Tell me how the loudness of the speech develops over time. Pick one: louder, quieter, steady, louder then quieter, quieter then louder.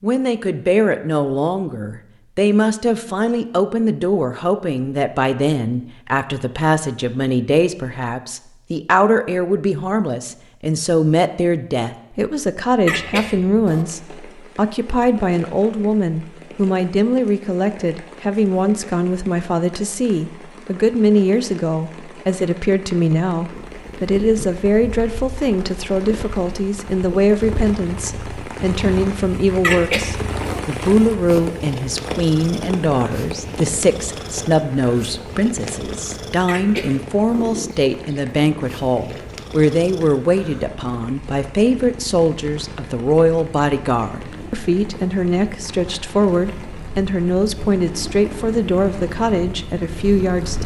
steady.